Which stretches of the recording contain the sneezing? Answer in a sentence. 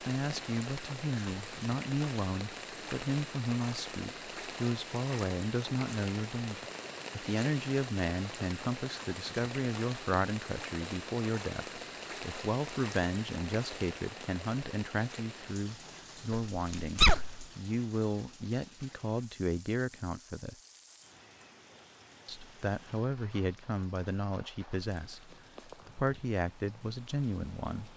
The sneezing can be heard from 16.6 to 17.4 s.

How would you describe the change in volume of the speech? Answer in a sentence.
The volume of the speech stays about the same.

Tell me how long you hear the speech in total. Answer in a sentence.
You can hear the speech for 26 seconds altogether.